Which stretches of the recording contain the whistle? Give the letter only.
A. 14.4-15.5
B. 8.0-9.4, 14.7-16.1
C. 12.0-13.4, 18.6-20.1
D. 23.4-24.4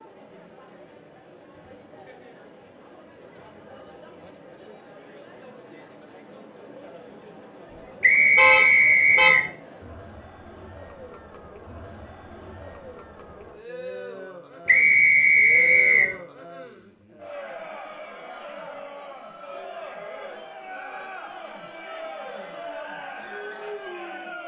B.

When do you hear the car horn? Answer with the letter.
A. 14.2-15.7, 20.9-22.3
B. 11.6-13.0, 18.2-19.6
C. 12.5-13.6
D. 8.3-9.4
D.